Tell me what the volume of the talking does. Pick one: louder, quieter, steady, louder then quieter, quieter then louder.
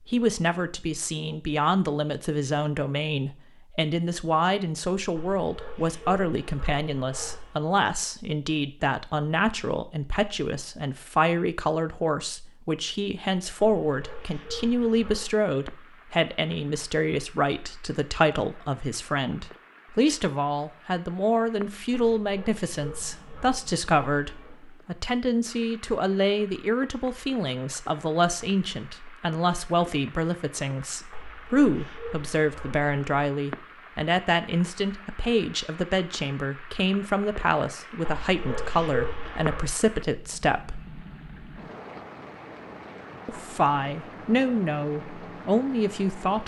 steady.